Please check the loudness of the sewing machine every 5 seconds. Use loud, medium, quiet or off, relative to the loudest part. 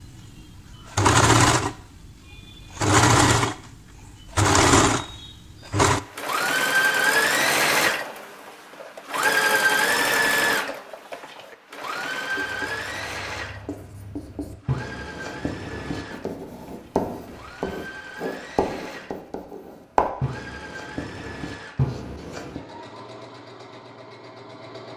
loud, loud, medium, quiet, quiet.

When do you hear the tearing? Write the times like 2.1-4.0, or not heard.
not heard.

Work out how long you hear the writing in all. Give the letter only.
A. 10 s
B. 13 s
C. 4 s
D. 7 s
A.